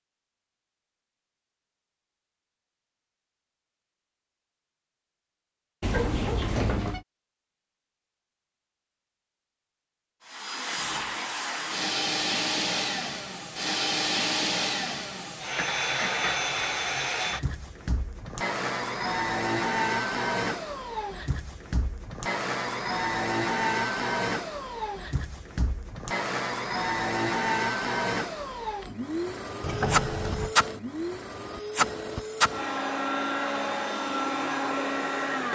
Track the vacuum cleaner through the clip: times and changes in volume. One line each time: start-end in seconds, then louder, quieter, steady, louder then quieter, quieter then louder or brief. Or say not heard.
10.2-35.5 steady.